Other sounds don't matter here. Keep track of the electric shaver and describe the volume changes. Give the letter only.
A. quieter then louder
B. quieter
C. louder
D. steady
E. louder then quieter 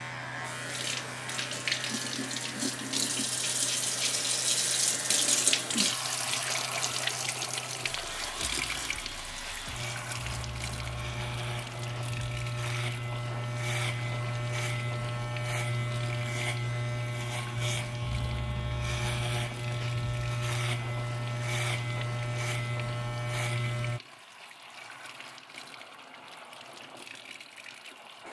C.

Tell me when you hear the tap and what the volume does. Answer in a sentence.
The tap can be heard from 0.0 to 28.2 s, getting quieter.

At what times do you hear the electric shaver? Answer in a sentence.
You can hear the electric shaver from 0.0 to 24.0 s.